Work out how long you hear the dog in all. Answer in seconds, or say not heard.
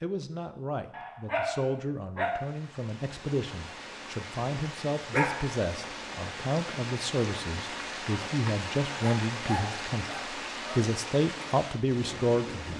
4 s.